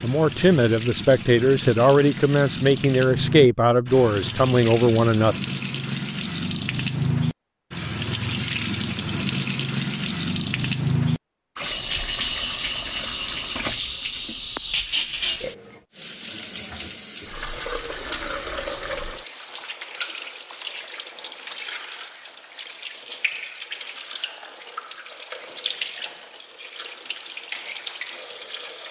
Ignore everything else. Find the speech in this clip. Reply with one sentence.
The speech can be heard from 0.0 to 5.3 s.